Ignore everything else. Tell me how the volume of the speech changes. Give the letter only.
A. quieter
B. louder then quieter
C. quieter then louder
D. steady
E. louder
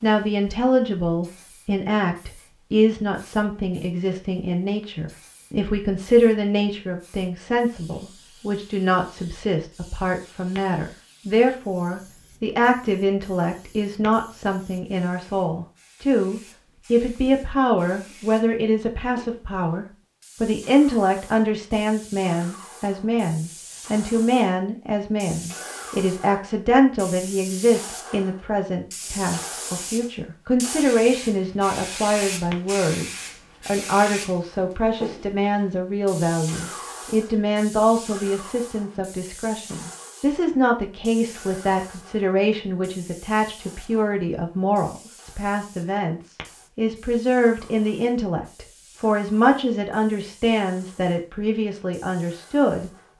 D.